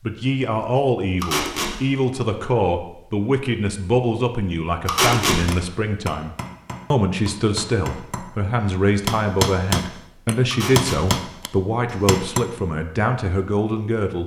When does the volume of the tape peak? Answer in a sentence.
The volume of the tape peaks at 5 seconds.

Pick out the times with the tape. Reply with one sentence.
The tape can be heard from 1.2 to 1.7 s, from 4.8 to 5.4 s and from 10.5 to 11.0 s.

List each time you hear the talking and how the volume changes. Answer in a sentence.
You can hear the talking from 0.0 to 14.2 s, at a steady volume.